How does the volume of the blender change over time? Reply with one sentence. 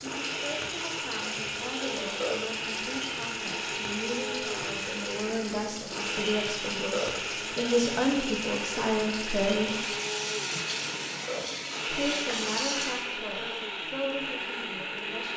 The volume of the blender stays about the same.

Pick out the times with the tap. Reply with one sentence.
The tap can be heard from 0.0 to 13.1 s.